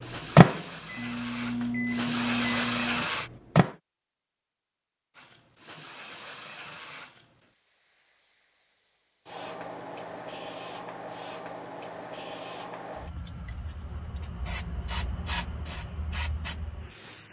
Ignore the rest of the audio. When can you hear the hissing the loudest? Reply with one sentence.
The loudest moment of the hissing is at 3 seconds.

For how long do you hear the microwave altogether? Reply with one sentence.
You can hear the microwave for 4 seconds altogether.